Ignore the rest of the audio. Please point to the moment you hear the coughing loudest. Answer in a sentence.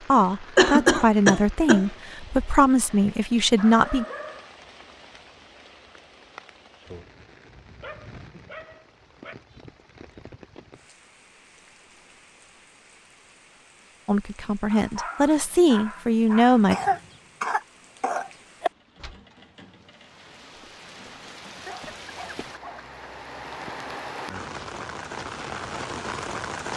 The loudest moment of the coughing is at 1 second.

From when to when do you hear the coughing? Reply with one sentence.
You can hear the coughing from 0.6 to 1.9 s and from 16.7 to 18.7 s.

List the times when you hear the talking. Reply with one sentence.
You can hear the talking from 0.1 to 4.0 s and from 14.1 to 16.8 s.